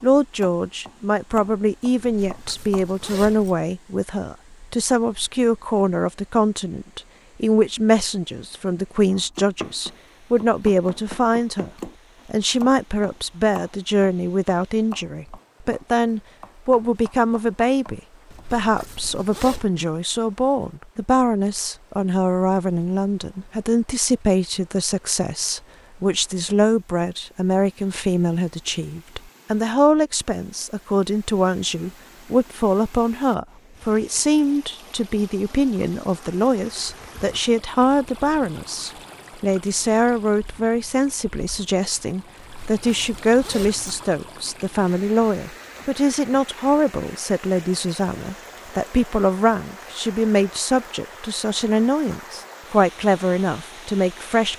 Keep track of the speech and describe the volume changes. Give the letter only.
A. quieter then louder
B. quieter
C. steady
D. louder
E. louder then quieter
C.